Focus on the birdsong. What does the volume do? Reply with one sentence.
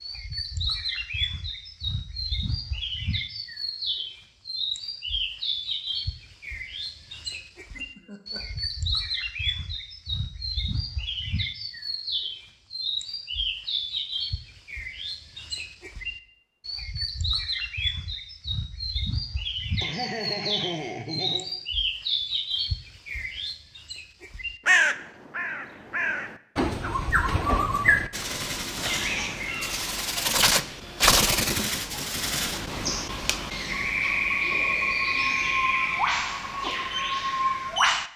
The loudness of the birdsong goes up.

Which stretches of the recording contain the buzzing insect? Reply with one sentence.
You can't hear the buzzing insect here.